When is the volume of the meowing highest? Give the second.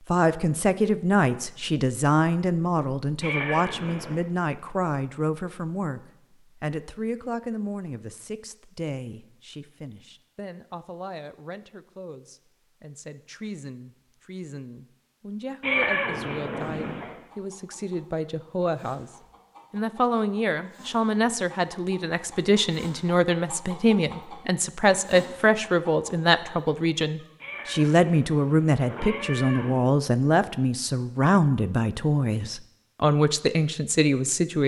16 s.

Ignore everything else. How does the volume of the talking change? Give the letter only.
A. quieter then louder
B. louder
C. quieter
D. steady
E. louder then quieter
A.